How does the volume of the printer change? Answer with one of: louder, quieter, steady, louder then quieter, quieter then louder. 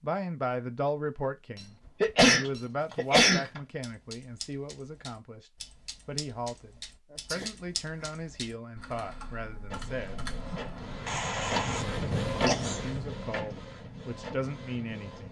louder then quieter.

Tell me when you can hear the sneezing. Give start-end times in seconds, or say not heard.
2.0-3.5, 7.1-8.1, 11.1-11.8, 12.4-12.8.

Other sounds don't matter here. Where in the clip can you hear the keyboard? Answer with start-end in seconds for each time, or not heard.
2.4-11.0.